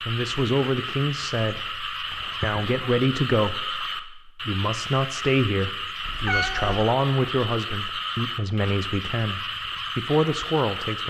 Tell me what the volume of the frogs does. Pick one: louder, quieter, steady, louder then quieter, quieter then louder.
steady.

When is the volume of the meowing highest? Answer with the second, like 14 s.
6 s.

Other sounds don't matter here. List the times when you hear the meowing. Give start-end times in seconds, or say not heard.
2.1-2.6, 6.0-6.9.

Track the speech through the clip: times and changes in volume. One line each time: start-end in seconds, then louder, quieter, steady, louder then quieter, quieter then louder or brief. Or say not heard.
0.0-11.0 steady.